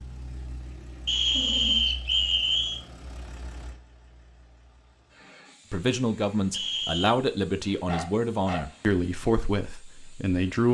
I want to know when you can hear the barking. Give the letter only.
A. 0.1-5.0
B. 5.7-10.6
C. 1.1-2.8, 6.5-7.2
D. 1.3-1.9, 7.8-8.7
D.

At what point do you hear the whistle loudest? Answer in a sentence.
The volume of the whistle peaks at 2 seconds.